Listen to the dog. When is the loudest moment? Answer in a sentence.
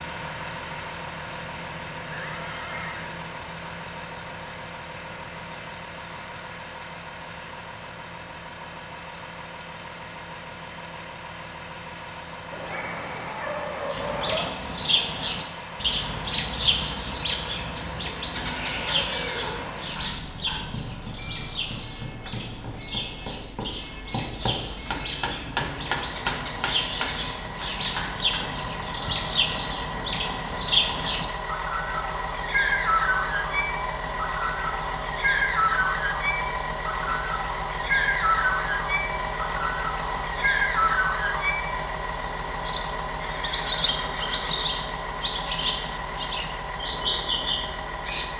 The volume of the dog peaks at 14 seconds.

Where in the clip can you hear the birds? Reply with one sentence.
You can hear the birds from 13.9 to 48.3 s.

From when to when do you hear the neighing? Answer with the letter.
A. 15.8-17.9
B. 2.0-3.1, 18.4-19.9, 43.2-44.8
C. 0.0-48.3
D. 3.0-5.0
B.